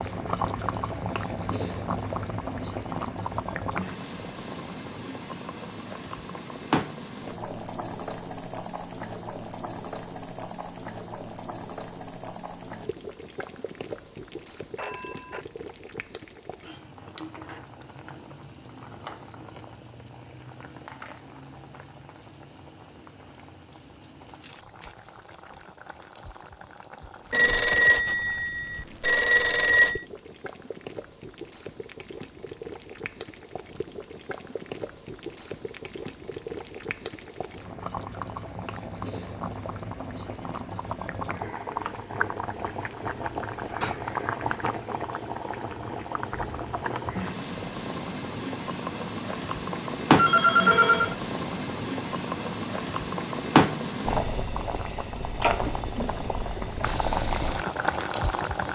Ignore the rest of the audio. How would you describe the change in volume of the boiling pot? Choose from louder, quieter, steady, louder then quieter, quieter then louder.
quieter then louder.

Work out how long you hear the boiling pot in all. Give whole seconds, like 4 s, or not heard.
59 s.